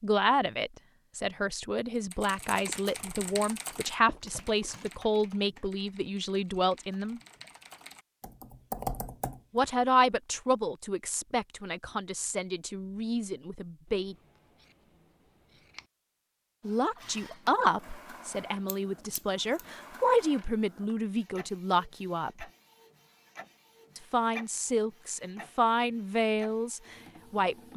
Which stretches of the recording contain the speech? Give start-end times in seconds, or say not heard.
0.0-7.2, 9.5-14.2, 16.6-22.4, 23.9-27.7.